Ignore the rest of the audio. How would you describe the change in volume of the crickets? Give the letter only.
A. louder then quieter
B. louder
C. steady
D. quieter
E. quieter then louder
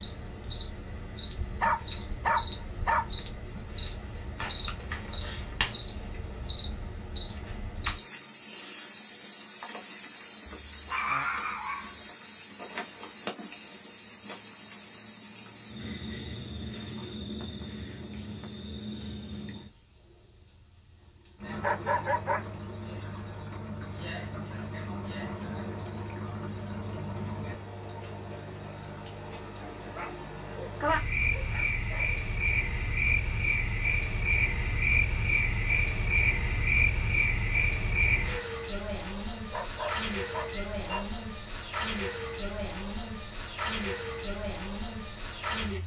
E.